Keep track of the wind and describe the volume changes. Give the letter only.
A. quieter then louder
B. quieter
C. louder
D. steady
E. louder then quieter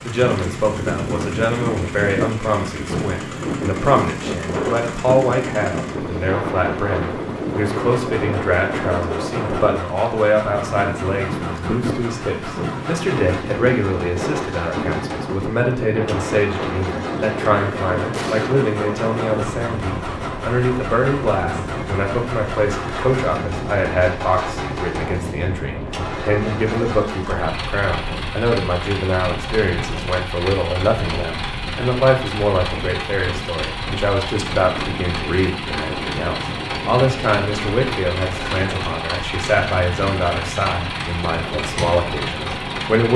B.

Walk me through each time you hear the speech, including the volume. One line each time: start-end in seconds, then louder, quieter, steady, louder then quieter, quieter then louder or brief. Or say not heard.
0.0-43.1 steady.